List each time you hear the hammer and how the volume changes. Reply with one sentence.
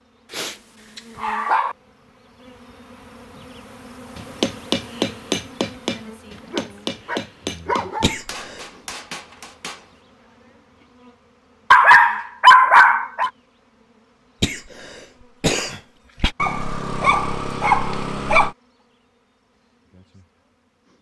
The hammer can be heard from 4.2 to 9.9 s, getting quieter.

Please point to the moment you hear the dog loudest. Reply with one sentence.
The loudest moment of the dog is at 13 seconds.